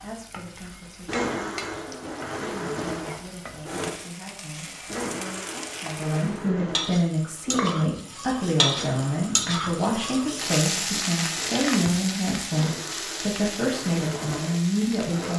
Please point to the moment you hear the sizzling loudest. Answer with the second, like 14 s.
9 s.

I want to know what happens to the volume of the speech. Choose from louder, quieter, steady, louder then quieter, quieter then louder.
louder.